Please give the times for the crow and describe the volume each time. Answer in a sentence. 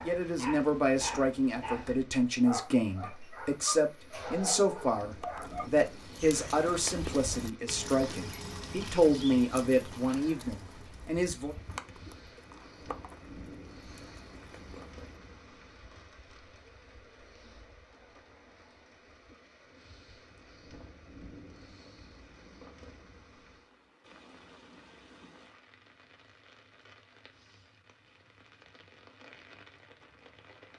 The crow can't be heard in this clip.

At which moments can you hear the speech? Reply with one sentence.
The speech can be heard from 0.0 to 11.6 s.